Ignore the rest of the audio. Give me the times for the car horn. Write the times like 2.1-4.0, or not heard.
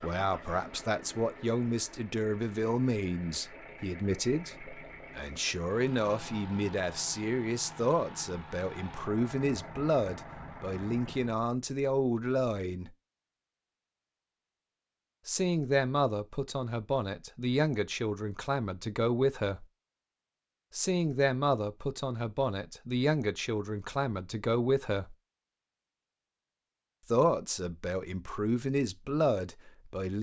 not heard.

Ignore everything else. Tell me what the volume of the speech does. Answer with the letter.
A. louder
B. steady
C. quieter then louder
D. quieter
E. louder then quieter
B.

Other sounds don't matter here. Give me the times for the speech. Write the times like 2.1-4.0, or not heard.
0.0-12.9, 15.2-19.6, 20.7-25.1, 27.1-30.1.